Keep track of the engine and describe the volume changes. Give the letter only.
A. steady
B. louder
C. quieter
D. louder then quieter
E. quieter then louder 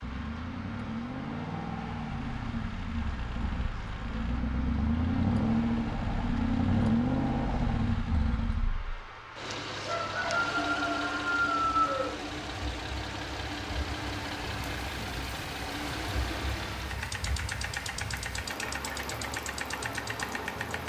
D.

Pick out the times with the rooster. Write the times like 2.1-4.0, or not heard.
9.8-12.2.